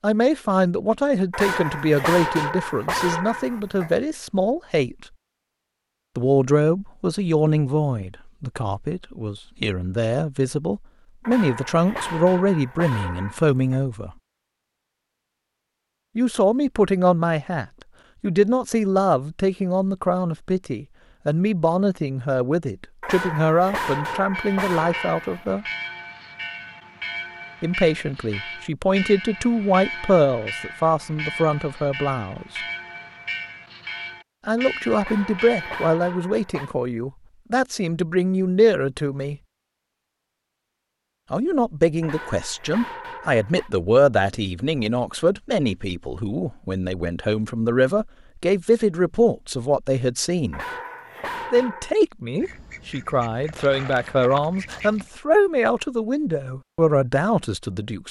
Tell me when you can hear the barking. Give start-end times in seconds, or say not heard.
1.3-3.9, 11.2-13.8, 23.0-25.4, 35.0-36.7, 42.0-43.7, 50.5-52.0.